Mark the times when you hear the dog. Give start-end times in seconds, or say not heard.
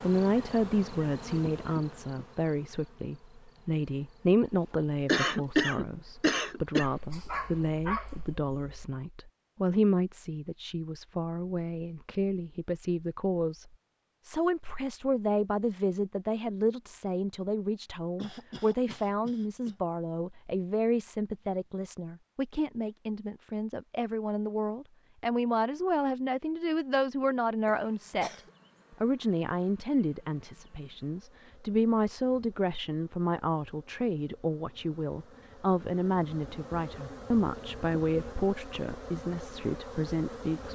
6.8-8.9.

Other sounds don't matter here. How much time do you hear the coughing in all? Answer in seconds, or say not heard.
5 s.